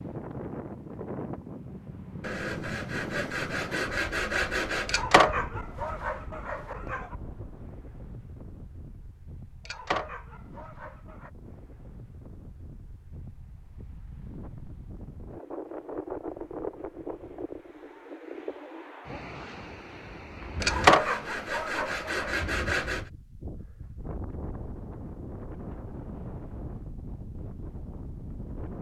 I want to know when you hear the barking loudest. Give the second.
21 s.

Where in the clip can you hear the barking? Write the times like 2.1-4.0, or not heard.
4.8-7.0, 9.7-11.3, 20.6-22.3.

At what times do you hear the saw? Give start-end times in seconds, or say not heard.
2.2-5.0, 20.6-23.1.